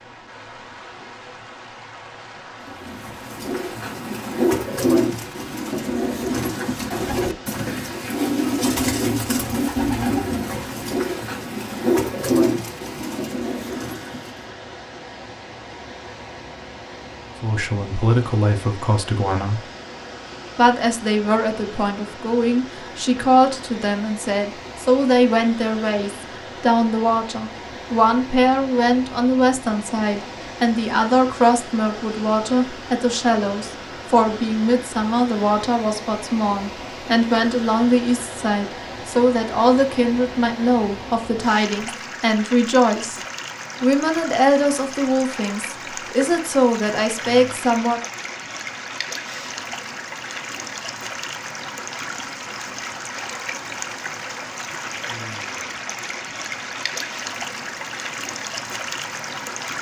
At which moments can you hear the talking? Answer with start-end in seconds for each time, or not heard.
17.4-19.6, 20.6-43.2, 43.8-48.0.